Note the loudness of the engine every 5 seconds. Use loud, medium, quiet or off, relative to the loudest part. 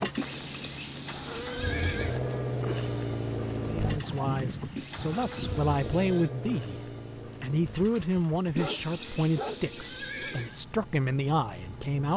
loud, medium, quiet.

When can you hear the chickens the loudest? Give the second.
4 s.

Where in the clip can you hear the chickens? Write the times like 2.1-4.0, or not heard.
3.9-5.7.